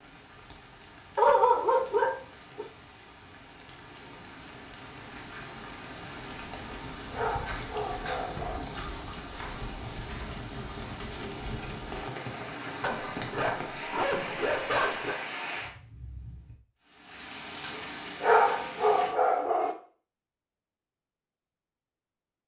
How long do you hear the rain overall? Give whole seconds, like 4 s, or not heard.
19 s.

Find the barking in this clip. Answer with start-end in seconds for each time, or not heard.
1.1-2.6, 7.1-8.7, 12.8-15.2, 18.2-19.8.